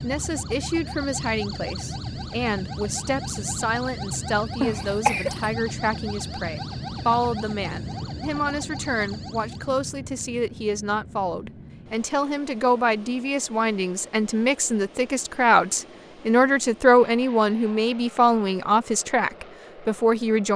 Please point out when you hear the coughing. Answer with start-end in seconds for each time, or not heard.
4.6-5.5.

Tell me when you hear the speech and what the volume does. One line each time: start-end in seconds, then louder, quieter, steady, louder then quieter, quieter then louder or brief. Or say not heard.
0.0-20.5 louder.